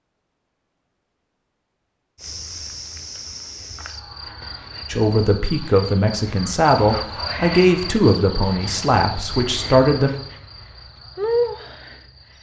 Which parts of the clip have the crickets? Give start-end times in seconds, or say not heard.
2.1-12.3.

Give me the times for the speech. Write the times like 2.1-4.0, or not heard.
4.9-10.1.